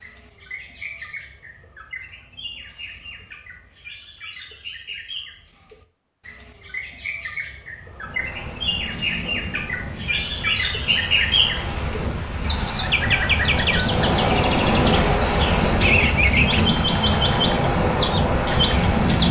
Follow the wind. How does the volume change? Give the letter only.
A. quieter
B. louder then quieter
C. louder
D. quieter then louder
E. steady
C.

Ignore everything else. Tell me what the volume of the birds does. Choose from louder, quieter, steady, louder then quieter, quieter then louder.
louder.